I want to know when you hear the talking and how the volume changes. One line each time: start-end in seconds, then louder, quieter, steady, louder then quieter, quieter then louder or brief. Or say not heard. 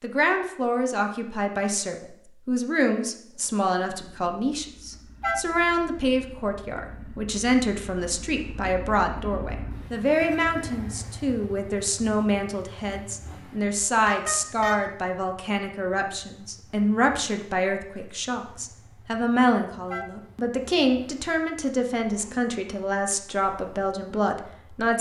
0.0-24.9 steady.